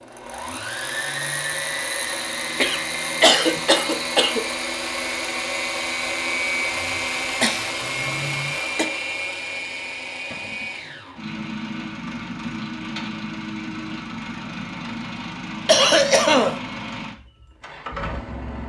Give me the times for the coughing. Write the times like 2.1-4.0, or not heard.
2.6-4.5, 6.8-8.8, 15.7-16.6.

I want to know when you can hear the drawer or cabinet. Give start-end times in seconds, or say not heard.
10.3-10.8.